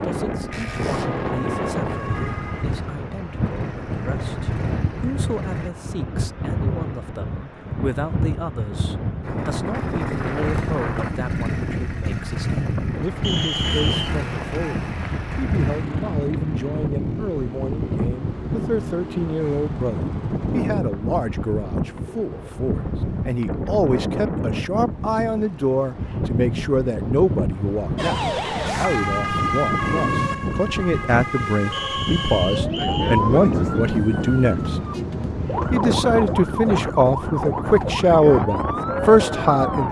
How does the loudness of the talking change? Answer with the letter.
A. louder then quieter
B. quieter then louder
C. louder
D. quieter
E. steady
C.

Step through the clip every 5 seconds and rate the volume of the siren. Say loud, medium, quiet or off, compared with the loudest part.
quiet, off, off, off, off, loud, loud, loud.